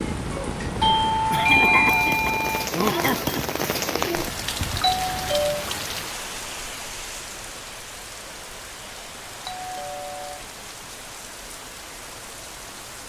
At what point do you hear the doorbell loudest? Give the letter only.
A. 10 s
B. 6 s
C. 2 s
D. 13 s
C.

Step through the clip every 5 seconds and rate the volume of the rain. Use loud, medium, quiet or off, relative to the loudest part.
loud, medium, medium.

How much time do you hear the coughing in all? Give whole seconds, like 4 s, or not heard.
2 s.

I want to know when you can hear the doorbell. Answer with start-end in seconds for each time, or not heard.
0.8-2.7, 4.6-5.7, 9.4-10.4.